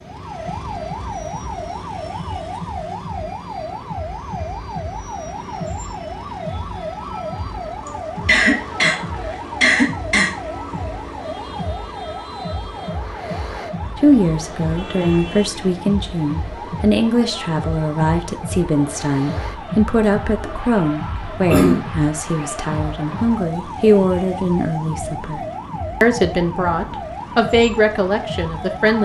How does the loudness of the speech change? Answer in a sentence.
The volume of the speech stays about the same.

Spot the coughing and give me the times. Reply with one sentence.
The coughing can be heard from 7.8 to 9.0 s, from 9.6 to 10.3 s and from 20.0 to 21.9 s.